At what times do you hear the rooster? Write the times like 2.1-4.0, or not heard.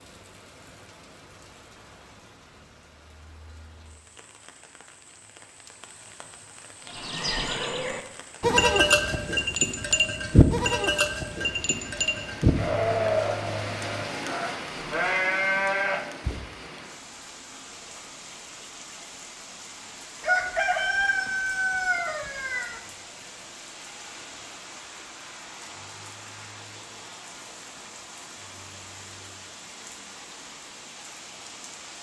20.2-22.8.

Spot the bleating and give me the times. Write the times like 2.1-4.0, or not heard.
6.9-16.4.